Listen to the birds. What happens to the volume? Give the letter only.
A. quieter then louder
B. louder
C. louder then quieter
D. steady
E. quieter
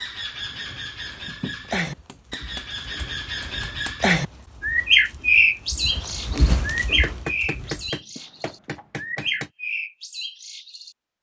C.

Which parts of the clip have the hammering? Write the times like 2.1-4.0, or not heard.
1.2-4.0, 7.0-9.5.